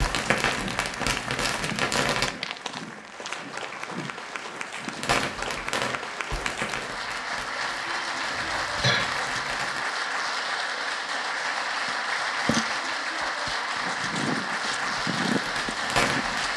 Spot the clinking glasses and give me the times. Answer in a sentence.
The clinking glasses can't be heard in this clip.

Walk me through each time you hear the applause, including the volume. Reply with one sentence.
You can hear the applause from 0.0 to 16.5 s, getting louder.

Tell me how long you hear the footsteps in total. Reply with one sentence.
The footsteps can be heard for 8 seconds in total.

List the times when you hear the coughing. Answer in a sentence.
You can hear the coughing from 8.3 to 9.1 s.